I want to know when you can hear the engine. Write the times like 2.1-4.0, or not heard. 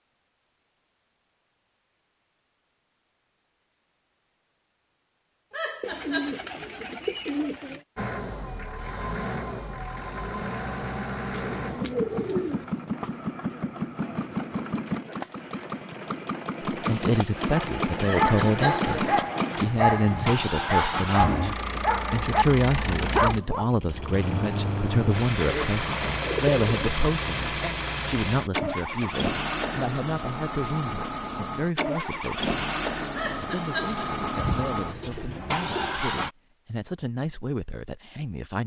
8.0-36.3.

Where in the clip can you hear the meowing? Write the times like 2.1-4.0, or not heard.
5.5-6.5, 18.0-18.9, 33.1-34.0.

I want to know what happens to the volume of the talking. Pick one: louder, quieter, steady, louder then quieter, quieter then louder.
quieter.